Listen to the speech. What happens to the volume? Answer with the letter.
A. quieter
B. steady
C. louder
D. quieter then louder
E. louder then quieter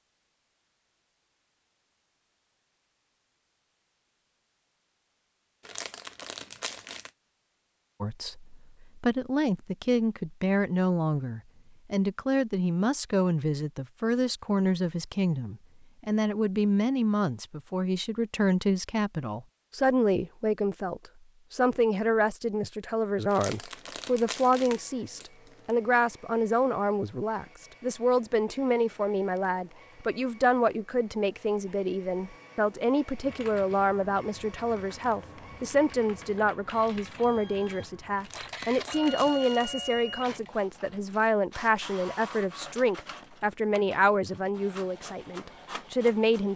B.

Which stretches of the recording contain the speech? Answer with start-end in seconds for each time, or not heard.
8.0-46.5.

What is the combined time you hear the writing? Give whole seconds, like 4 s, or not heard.
not heard.